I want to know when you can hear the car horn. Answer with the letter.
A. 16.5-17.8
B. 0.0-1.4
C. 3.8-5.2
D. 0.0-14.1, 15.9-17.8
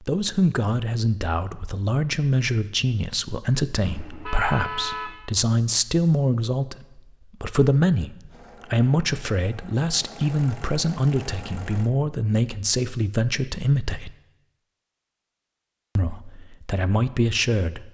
C.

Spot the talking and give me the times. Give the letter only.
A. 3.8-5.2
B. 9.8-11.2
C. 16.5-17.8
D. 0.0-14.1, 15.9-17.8
D.